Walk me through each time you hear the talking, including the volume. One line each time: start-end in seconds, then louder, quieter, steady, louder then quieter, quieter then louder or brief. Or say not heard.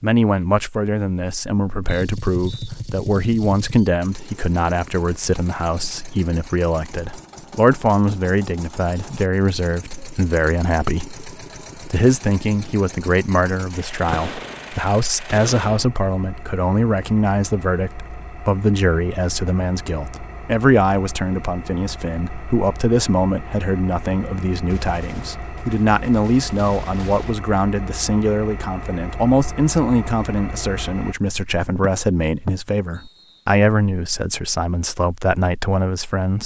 0.0-36.4 steady.